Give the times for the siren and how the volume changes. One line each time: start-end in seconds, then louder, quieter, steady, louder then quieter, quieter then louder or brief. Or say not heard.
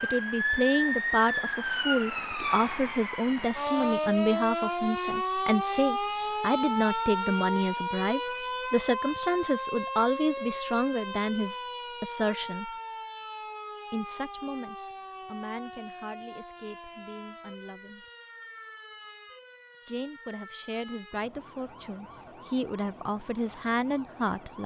0.0-24.6 quieter.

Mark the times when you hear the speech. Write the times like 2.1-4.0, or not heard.
0.0-12.7, 13.9-18.1, 19.9-24.6.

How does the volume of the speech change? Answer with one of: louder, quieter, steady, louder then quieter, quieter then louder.
quieter then louder.